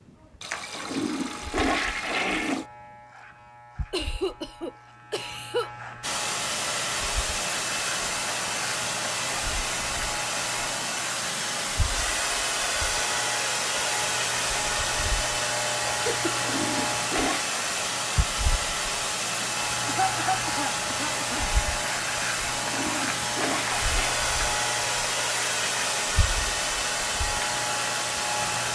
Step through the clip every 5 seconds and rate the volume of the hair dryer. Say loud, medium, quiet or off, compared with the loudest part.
off, loud, loud, loud, loud, loud.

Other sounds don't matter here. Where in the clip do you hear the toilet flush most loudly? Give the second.
2 s.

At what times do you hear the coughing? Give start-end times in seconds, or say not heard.
3.9-5.7, 16.1-16.9, 19.4-21.6.